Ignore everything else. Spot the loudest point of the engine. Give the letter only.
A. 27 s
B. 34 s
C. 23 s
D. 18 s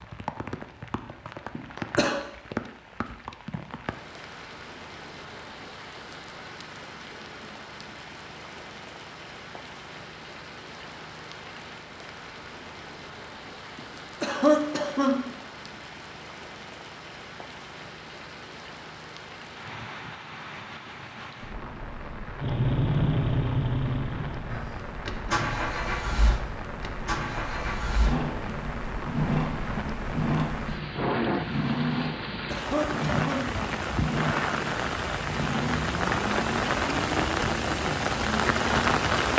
C.